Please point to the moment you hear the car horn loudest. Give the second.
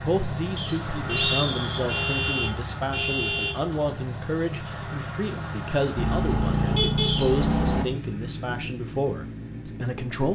7 s.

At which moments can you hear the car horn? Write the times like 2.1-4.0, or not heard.
1.1-3.6, 6.0-7.8.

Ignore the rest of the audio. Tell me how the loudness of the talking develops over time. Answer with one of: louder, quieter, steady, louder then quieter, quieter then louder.
steady.